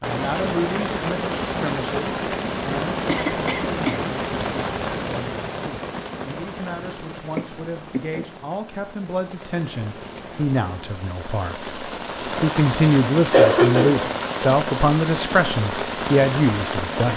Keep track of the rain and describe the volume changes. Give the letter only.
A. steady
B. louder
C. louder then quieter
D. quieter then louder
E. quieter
D.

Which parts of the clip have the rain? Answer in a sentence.
The rain can be heard from 0.0 to 17.1 s.